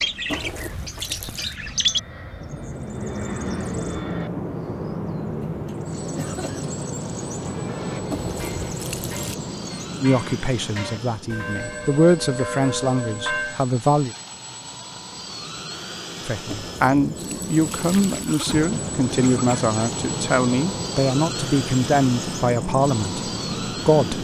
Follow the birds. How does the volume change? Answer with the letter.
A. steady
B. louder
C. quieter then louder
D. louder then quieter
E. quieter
C.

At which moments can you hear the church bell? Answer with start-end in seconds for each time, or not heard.
7.3-13.6.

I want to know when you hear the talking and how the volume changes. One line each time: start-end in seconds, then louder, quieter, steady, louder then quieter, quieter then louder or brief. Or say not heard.
10.0-14.2 louder then quieter
16.2-24.1 steady.